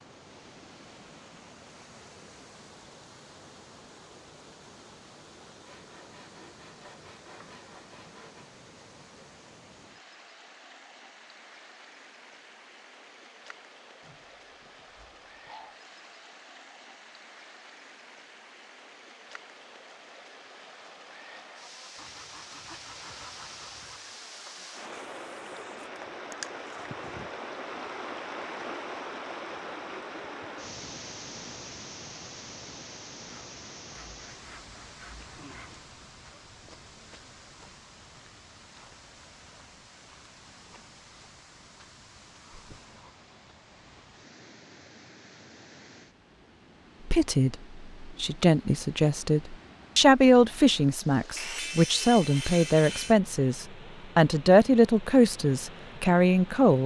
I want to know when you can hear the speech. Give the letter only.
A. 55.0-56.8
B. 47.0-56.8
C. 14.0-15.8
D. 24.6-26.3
B.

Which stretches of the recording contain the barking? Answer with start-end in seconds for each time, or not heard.
14.0-15.8.